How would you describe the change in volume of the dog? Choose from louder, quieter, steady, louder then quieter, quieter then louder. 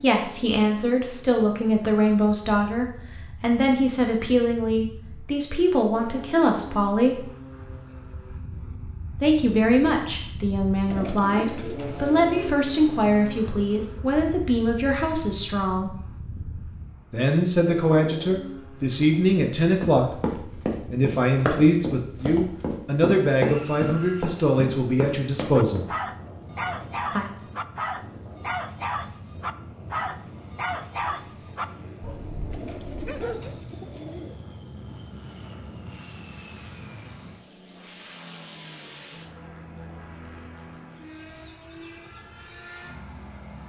quieter.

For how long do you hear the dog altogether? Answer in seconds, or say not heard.
8 s.